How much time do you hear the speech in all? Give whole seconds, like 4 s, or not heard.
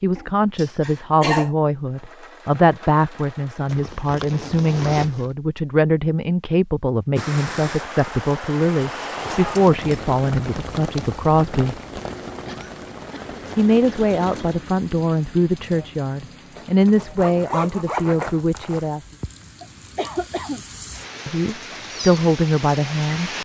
19 s.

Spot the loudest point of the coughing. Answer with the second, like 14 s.
1 s.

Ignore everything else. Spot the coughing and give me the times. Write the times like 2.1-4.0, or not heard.
0.1-1.5, 12.4-13.4, 19.6-20.6.